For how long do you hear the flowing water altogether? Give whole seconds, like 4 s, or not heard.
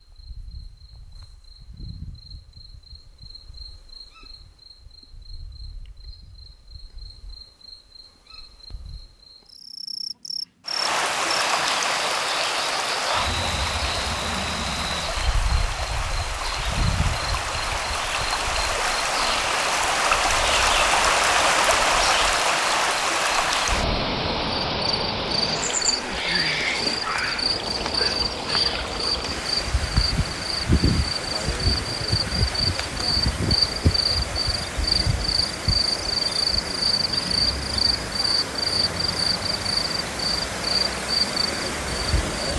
32 s.